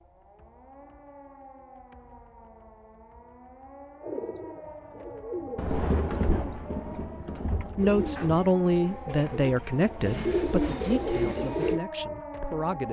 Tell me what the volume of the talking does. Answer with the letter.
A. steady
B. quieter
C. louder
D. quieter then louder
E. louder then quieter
B.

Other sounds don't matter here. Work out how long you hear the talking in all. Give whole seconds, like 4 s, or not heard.
5 s.